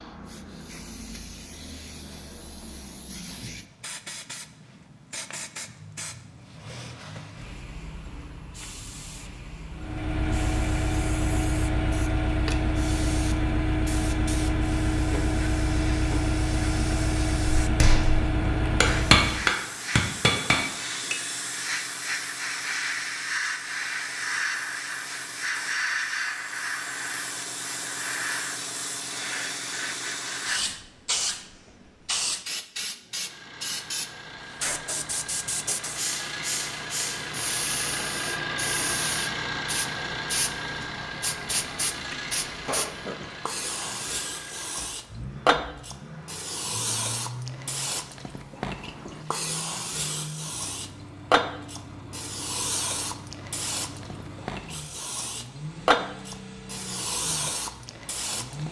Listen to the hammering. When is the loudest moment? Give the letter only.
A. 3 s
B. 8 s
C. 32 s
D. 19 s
D.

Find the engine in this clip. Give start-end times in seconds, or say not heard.
9.7-19.5, 33.0-58.6.